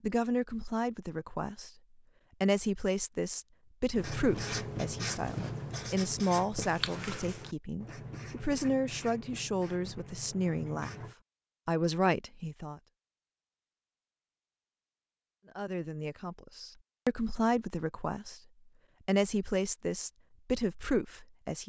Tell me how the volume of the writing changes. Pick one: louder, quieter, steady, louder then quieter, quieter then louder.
quieter.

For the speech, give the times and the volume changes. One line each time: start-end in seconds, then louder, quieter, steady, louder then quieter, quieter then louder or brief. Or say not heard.
0.0-1.7 brief
2.4-10.9 quieter then louder
11.7-12.8 brief
15.6-18.4 brief
19.1-21.6 brief.